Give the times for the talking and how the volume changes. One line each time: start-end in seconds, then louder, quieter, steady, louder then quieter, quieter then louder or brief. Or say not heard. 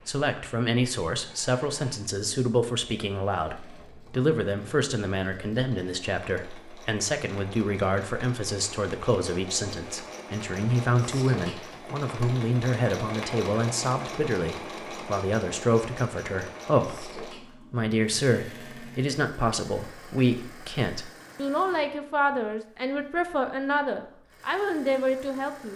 0.1-25.7 steady.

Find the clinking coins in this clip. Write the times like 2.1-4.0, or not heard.
not heard.